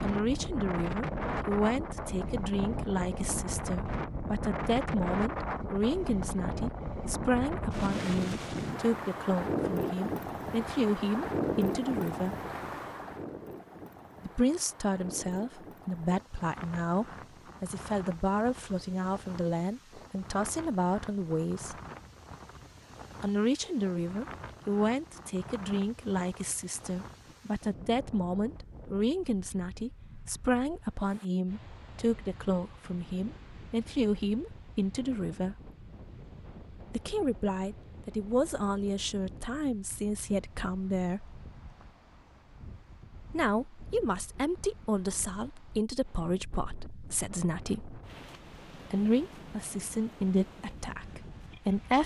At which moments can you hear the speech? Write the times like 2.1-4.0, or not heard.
0.0-12.3, 14.2-21.8, 23.2-35.5, 36.9-41.4, 43.3-48.0, 48.8-52.0.